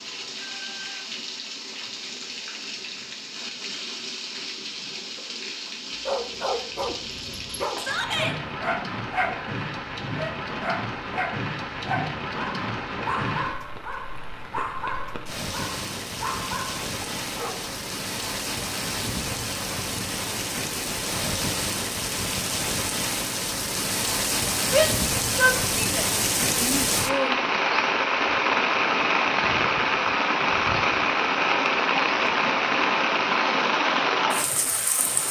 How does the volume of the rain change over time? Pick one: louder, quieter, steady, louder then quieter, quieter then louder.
louder.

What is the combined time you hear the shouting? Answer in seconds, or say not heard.
3 s.